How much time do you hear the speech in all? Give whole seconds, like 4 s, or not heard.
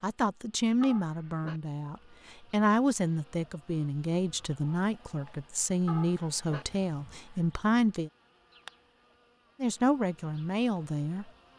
10 s.